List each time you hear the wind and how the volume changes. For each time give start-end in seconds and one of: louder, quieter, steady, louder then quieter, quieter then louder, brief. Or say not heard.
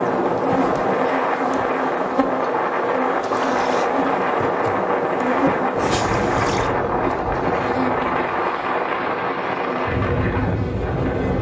0.0-11.3 steady.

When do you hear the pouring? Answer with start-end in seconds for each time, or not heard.
3.2-3.9, 5.8-6.8.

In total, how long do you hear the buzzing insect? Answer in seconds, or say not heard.
11 s.